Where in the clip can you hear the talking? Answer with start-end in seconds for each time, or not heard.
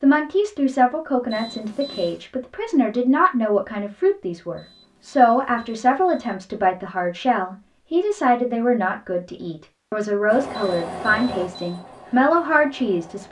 0.0-13.2.